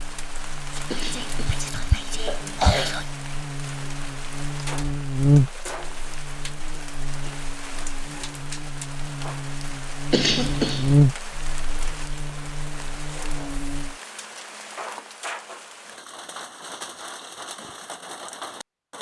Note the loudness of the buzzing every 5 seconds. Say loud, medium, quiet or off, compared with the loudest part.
medium, loud, loud, off.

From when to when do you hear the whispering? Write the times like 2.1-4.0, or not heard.
0.8-3.0.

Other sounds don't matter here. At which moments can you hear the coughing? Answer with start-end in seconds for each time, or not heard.
0.9-3.0, 10.1-10.9.